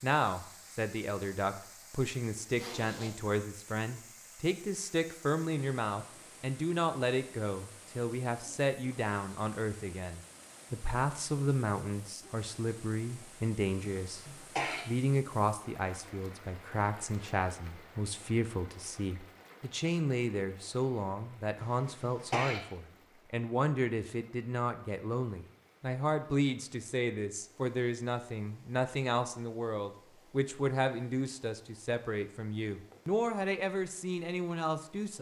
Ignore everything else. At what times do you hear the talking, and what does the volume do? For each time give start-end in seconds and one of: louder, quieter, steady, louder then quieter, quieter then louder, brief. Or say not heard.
0.0-14.2 steady
14.8-35.1 steady.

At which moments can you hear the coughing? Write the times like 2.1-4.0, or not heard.
13.8-14.8, 21.6-22.6.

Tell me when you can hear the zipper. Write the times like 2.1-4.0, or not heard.
2.5-3.2.